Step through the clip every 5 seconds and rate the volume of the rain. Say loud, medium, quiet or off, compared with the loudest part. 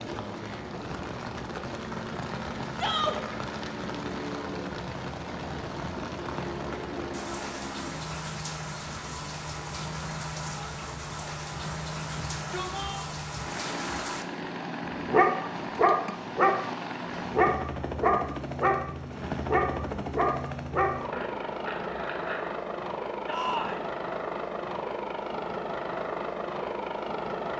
loud, loud, loud, off, off, off.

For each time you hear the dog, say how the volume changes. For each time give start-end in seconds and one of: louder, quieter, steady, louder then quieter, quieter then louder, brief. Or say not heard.
14.9-16.6 brief
17.2-22.5 quieter.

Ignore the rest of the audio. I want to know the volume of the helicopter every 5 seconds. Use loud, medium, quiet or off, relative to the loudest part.
medium, medium, medium, loud, loud, loud.